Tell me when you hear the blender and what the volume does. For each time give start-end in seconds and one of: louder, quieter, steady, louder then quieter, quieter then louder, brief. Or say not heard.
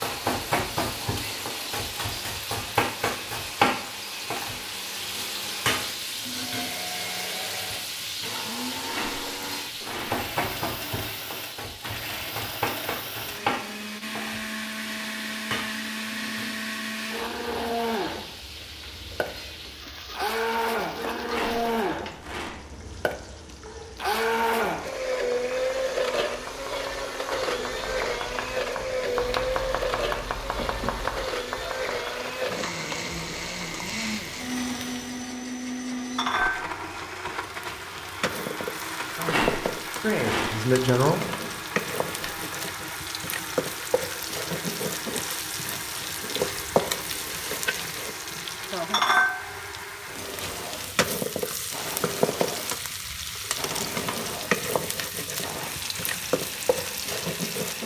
0.0-57.8 louder then quieter.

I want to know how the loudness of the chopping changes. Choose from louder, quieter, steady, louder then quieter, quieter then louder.
louder.